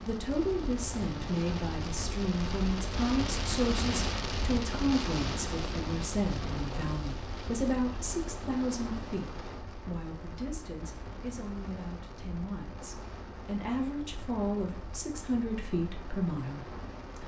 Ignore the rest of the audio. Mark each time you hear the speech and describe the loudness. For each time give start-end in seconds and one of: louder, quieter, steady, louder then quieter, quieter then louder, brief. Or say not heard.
0.1-17.2 quieter then louder.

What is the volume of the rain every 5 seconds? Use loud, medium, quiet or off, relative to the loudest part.
loud, loud, medium, medium.